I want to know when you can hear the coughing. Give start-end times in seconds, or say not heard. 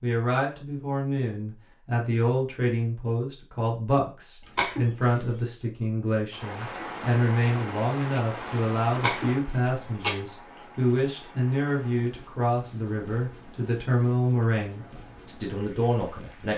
4.5-5.4, 8.9-10.2.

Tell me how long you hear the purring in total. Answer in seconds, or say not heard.
not heard.